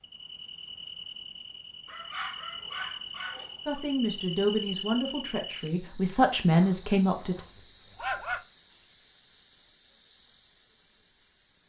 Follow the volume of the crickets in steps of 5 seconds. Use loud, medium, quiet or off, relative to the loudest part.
medium, loud, medium.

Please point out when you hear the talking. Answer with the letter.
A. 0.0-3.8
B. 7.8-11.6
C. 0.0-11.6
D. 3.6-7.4
D.